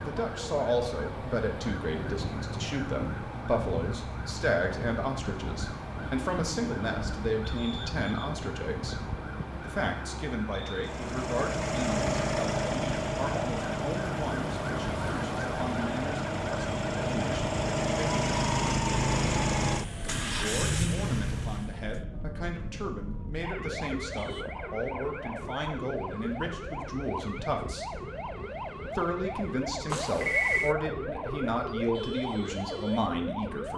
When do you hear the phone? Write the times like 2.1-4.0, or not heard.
29.9-30.8.